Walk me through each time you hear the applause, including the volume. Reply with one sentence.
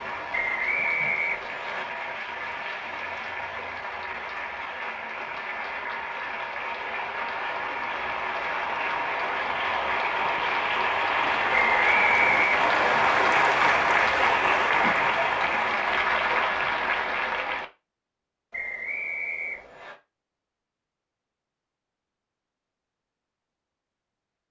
The applause can be heard from 0.0 to 17.6 s, getting louder.